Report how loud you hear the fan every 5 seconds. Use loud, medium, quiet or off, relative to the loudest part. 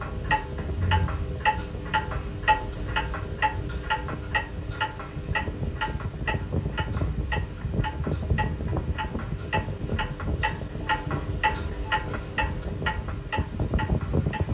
medium, loud, loud.